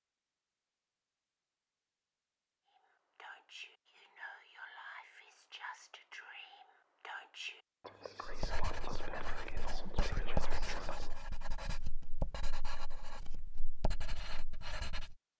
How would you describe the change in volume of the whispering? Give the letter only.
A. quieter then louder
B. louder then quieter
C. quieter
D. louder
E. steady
D.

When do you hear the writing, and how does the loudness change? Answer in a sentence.
The writing can be heard from 8.2 to 15.2 s, getting louder then quieter.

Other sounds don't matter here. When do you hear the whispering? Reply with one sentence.
You can hear the whispering from 2.8 to 11.1 s.